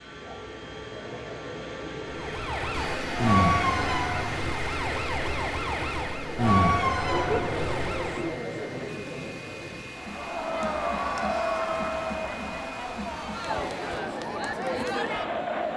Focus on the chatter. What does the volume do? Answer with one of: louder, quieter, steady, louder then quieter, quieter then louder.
louder.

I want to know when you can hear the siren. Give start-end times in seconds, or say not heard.
2.1-8.3.